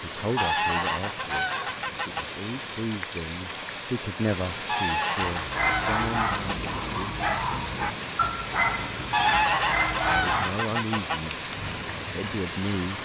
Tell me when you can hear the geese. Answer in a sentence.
You can hear the geese from 0.3 to 2.2 s, from 4.7 to 6.8 s and from 9.1 to 11.2 s.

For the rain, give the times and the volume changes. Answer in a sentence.
You can hear the rain from 0.0 to 13.0 s, at a steady volume.